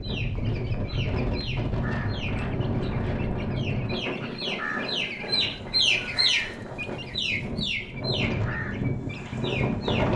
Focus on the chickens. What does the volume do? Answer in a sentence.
The loudness of the chickens goes up, then down.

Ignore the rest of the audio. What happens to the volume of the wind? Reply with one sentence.
The loudness of the wind goes down, then up.